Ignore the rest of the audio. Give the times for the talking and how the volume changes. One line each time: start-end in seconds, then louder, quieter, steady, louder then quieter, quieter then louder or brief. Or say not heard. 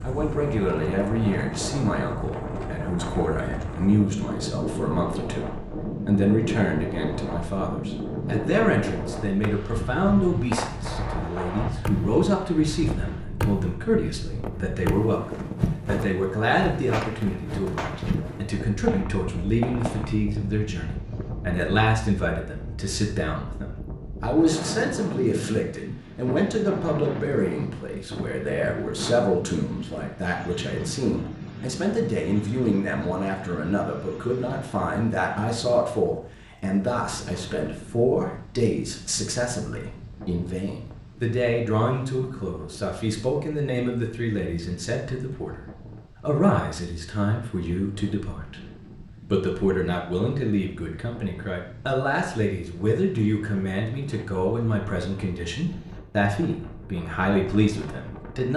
0.0-58.5 steady.